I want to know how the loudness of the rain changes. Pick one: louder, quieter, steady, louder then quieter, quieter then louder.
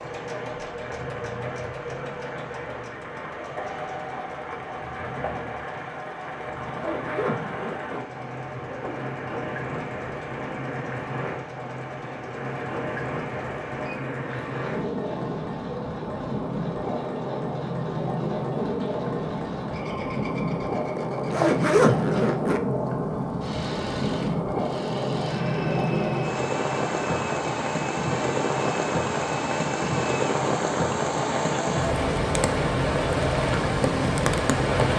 louder.